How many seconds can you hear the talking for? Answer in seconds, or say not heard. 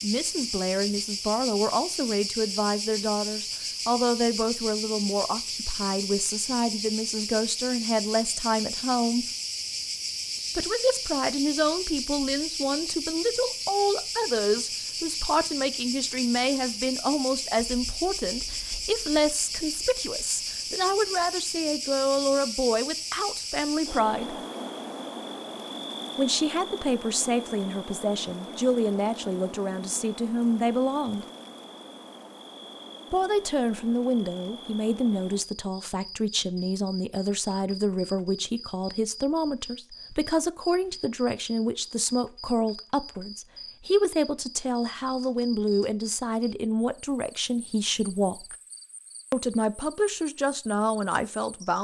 46 s.